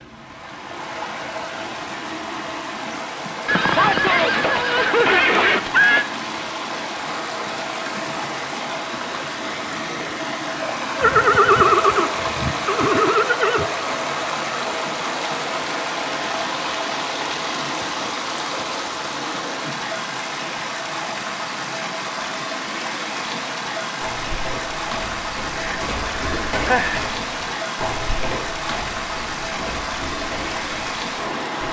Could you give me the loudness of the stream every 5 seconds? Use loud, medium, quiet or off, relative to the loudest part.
medium, loud, loud, loud, loud, loud, loud.